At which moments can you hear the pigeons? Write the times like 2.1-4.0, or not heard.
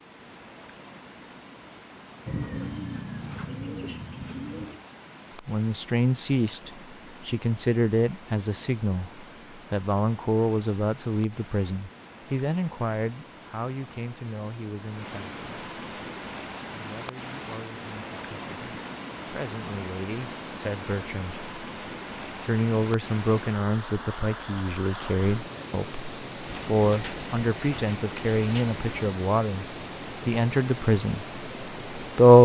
2.2-4.8, 26.4-29.1.